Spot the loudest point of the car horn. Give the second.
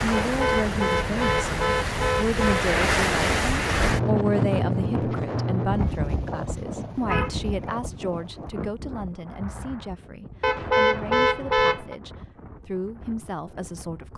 11 s.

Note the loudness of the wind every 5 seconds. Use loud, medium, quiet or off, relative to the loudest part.
loud, medium, quiet.